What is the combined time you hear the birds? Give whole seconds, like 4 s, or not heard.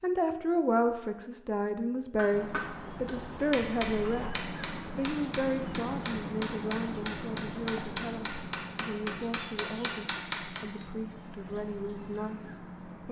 11 s.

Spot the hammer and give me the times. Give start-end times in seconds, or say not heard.
2.1-10.8.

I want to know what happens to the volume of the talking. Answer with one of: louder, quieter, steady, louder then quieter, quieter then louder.
quieter.